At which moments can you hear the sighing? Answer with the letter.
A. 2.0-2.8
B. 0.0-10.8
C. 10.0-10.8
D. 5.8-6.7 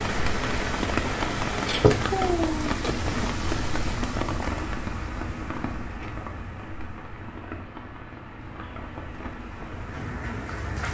A.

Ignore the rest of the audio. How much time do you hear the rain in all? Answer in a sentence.
You can hear the rain for 11 seconds altogether.